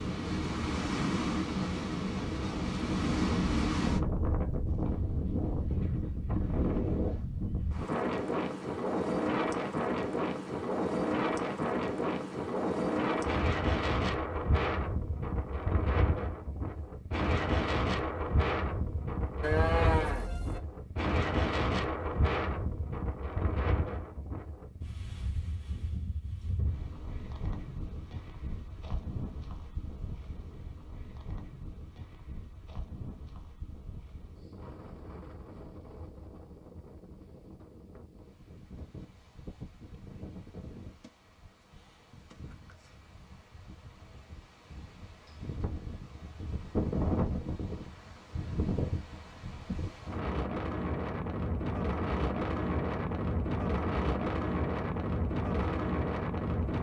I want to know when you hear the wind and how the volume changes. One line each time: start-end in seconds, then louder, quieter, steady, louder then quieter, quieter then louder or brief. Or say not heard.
0.0-56.7 quieter then louder.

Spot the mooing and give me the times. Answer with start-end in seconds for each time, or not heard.
19.4-20.6.